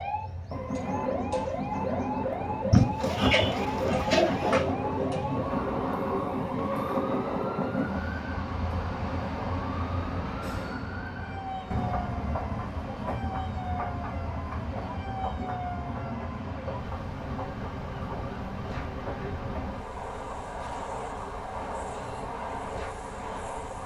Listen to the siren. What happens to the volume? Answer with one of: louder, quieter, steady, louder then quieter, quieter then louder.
quieter.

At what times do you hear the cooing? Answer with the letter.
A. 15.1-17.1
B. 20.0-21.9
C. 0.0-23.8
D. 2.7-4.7
D.